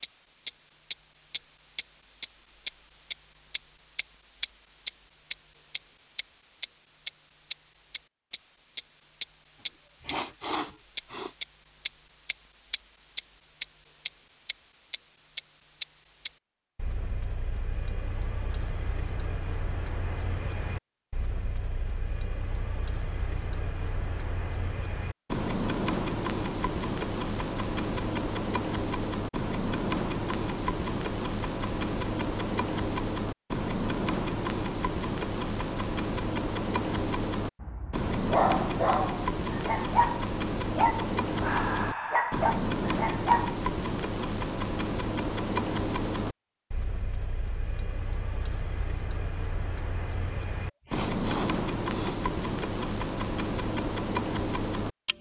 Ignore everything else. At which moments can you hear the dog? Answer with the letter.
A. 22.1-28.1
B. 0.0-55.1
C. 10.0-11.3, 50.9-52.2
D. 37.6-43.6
D.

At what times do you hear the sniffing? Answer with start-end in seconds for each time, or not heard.
10.0-11.3, 50.9-52.2.